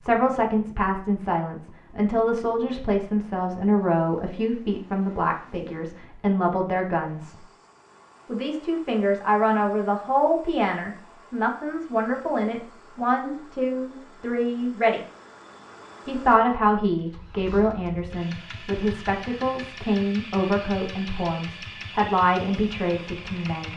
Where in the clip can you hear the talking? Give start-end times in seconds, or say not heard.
0.0-7.3, 8.2-15.0, 16.1-23.7.